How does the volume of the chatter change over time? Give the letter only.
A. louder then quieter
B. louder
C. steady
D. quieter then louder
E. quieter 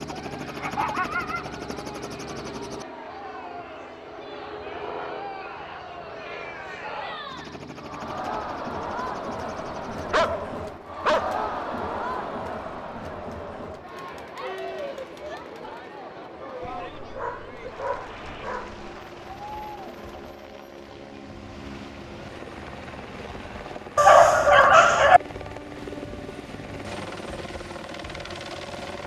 A.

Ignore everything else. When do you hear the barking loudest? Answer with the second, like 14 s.
24 s.